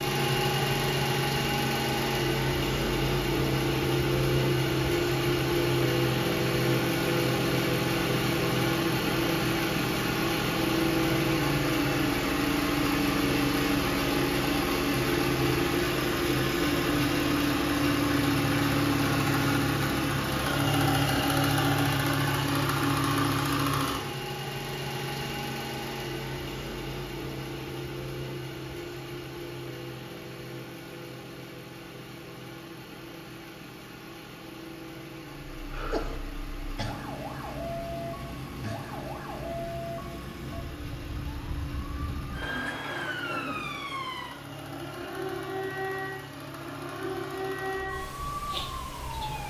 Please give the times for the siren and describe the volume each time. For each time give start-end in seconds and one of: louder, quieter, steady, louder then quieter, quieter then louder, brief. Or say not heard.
35.5-49.4 steady.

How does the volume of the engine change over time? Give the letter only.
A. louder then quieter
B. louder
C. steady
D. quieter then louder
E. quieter
E.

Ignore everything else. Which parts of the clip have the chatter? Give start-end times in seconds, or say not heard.
not heard.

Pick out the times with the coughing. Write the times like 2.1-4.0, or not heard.
42.4-43.7.